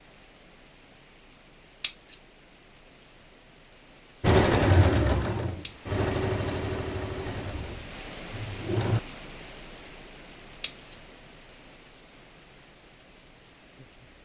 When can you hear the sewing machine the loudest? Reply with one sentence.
The volume of the sewing machine peaks at 5 seconds.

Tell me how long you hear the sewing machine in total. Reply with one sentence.
You can hear the sewing machine for 5 seconds altogether.